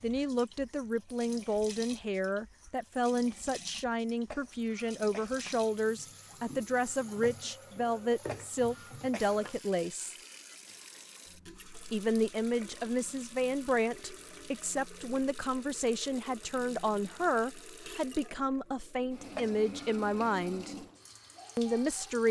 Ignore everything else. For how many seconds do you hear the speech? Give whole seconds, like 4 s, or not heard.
20 s.